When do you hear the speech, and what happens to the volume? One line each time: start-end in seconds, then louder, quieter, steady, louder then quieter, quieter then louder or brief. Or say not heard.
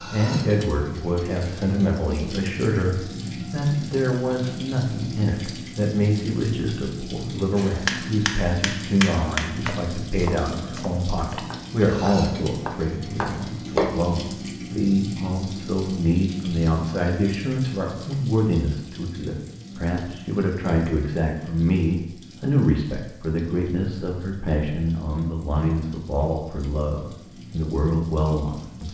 0.0-28.8 steady.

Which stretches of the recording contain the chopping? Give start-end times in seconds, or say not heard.
7.5-14.2.